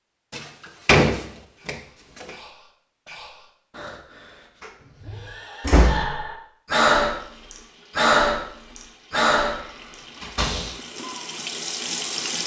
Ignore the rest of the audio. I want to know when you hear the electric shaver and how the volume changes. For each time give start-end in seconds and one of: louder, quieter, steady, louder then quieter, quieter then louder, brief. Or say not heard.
not heard.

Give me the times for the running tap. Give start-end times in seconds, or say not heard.
7.0-12.4.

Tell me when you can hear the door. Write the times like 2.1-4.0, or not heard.
0.3-2.3, 4.6-6.3, 9.6-10.7.